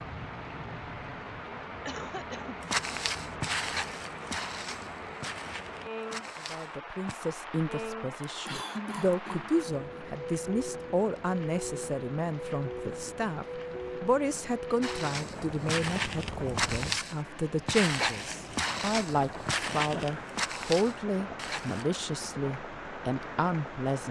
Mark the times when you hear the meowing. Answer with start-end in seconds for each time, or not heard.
not heard.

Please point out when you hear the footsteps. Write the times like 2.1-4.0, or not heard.
2.6-7.2, 14.8-21.9.